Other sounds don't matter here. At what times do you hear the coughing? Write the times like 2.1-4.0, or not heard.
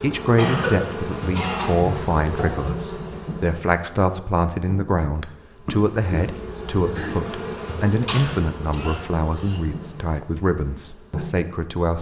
0.3-1.8, 5.7-6.2, 8.0-9.6.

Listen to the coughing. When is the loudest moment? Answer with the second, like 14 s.
1 s.